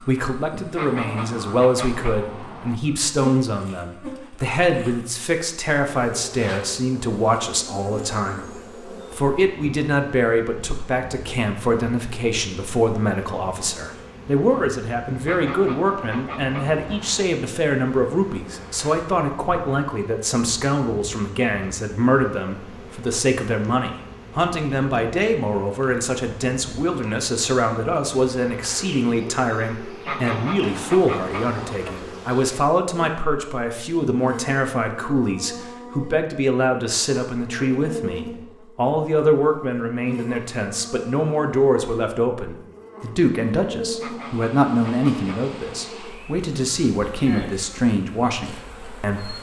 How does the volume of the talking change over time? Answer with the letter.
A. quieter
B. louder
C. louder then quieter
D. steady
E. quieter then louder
D.